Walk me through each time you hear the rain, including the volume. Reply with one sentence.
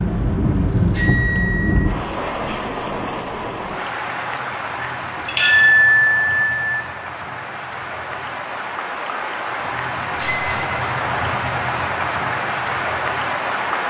You can hear the rain from 0.0 to 13.8 s, getting quieter then louder.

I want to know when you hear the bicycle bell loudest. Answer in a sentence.
The loudest moment of the bicycle bell is at 6 seconds.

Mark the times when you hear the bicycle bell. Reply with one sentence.
The bicycle bell can be heard from 0.9 to 1.8 s, from 4.8 to 6.8 s and from 10.2 to 10.9 s.